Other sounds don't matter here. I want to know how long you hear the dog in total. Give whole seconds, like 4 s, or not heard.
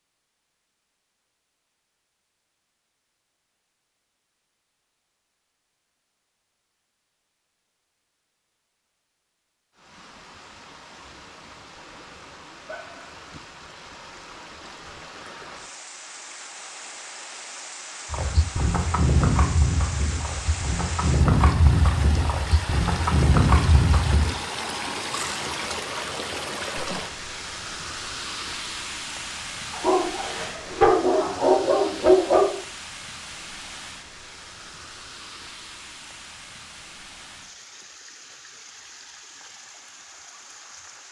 4 s.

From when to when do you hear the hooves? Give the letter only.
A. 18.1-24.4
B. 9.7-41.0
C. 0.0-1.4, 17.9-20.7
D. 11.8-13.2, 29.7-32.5
A.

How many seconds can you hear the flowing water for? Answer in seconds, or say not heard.
31 s.